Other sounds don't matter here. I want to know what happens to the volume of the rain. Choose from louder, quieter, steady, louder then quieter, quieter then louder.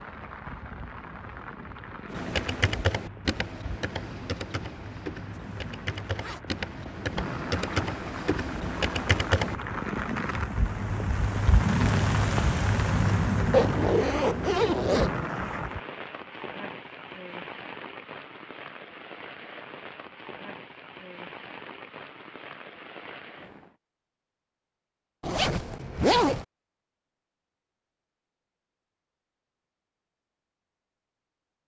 louder then quieter.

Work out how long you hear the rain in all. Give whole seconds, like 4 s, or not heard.
24 s.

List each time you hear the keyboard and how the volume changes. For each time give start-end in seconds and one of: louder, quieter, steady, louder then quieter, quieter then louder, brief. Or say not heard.
2.1-9.6 quieter then louder.